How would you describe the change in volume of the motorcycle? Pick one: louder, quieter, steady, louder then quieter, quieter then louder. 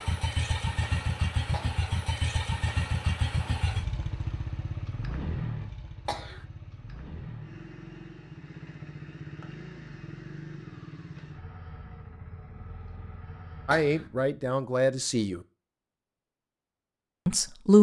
quieter.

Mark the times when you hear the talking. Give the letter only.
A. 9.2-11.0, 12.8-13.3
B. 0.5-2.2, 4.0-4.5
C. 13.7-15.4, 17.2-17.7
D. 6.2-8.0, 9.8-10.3
C.